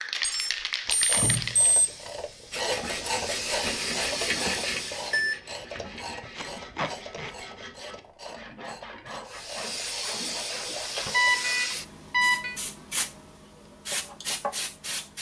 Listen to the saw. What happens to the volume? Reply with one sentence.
The volume of the saw goes down.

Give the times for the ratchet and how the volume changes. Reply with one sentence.
The ratchet can be heard from 0.8 to 11.5 s, getting quieter.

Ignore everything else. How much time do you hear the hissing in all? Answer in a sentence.
The hissing can be heard for 11 seconds in total.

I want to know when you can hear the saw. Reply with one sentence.
You can hear the saw from 2.5 to 11.1 s.